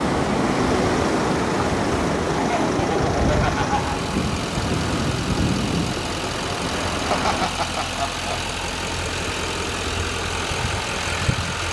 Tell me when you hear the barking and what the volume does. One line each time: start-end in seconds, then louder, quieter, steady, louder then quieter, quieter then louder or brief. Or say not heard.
not heard.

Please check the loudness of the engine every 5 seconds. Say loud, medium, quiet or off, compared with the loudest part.
medium, loud, loud.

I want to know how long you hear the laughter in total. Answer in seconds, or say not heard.
3 s.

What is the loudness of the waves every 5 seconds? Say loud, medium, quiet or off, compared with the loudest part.
loud, loud, off.